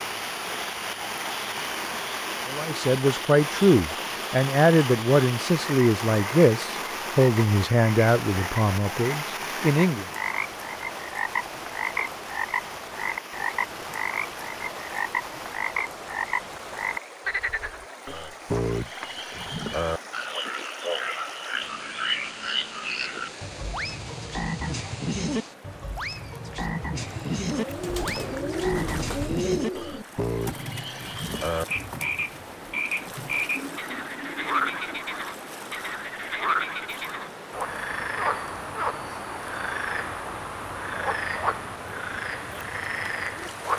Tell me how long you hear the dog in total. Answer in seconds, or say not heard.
not heard.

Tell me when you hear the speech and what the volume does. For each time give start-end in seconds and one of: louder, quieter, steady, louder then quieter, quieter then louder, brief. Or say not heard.
2.5-10.1 quieter.